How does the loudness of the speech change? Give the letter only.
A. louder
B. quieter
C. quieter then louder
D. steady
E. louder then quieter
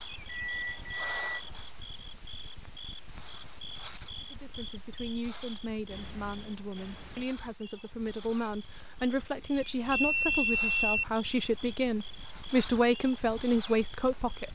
A.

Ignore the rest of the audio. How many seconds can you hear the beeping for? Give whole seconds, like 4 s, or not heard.
4 s.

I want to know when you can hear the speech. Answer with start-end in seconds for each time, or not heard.
4.3-14.5.